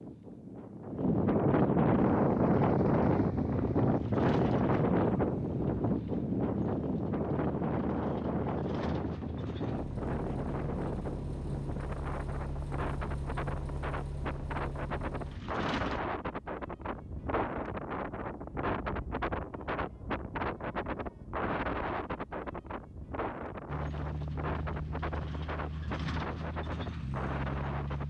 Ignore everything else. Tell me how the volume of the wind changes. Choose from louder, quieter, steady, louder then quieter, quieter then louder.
quieter.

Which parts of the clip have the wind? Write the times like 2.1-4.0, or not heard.
0.0-28.0.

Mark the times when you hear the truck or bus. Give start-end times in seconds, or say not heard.
1.9-16.0, 23.6-28.0.